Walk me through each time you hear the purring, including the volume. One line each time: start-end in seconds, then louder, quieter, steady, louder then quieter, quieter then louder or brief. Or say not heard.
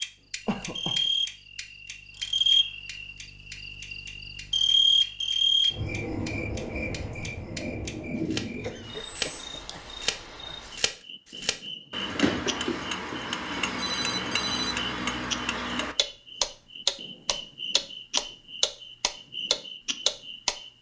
not heard.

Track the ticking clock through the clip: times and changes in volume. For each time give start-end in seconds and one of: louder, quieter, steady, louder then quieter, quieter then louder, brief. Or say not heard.
0.0-20.6 louder.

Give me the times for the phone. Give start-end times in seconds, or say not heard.
13.8-14.8.